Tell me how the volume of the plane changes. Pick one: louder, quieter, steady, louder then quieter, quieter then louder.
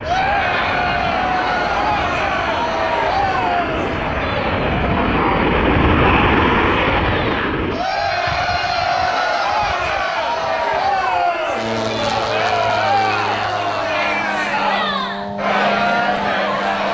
louder then quieter.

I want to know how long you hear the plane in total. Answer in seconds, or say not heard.
17 s.